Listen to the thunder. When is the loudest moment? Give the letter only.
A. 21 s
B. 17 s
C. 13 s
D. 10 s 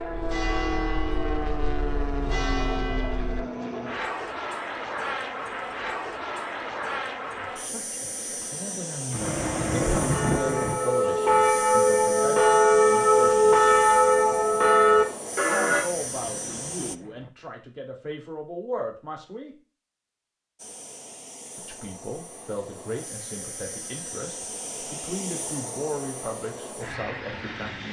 D.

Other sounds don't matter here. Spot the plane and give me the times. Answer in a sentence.
The plane can be heard from 0.0 to 16.9 s and from 20.6 to 27.8 s.